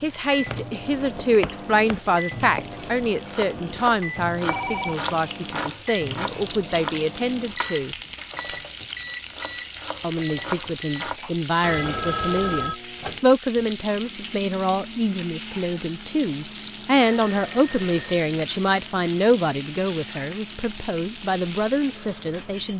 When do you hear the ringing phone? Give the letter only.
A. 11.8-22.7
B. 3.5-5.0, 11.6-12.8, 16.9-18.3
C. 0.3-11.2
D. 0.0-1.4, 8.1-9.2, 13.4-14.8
B.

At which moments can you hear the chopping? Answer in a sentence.
The chopping can be heard from 0.3 to 11.2 s.